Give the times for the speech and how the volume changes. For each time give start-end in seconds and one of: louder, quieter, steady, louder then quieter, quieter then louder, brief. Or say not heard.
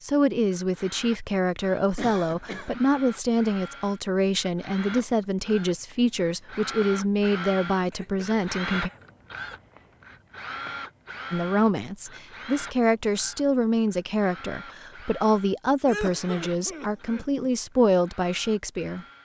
0.0-8.9 steady
11.3-19.1 steady.